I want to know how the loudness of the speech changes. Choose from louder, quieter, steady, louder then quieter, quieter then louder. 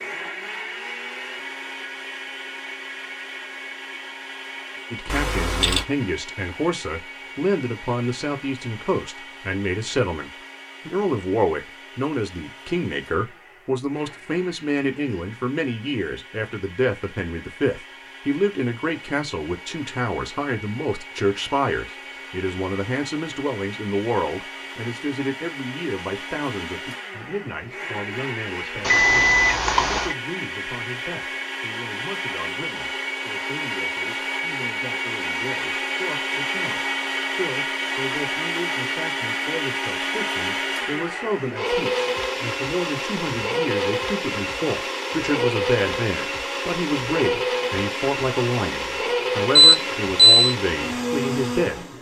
quieter then louder.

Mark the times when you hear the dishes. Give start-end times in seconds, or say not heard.
not heard.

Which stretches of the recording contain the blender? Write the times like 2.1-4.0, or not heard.
0.0-51.9.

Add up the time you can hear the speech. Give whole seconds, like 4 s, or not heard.
47 s.